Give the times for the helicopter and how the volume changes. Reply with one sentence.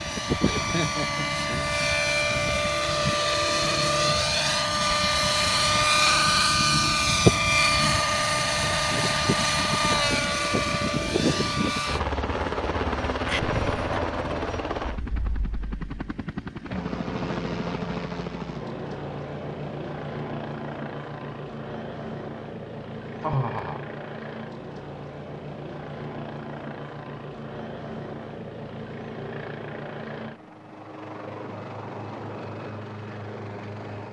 You can hear the helicopter from 0.0 to 34.0 s, getting quieter.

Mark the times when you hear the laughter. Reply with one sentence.
You can hear the laughter from 0.4 to 1.7 s, from 13.2 to 13.8 s and from 23.2 to 23.9 s.